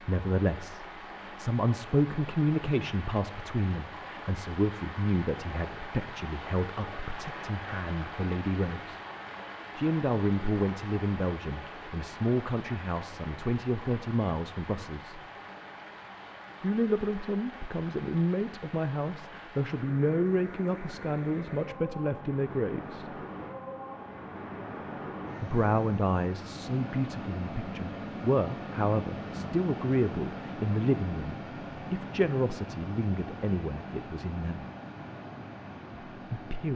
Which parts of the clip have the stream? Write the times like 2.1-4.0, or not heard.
0.0-36.7.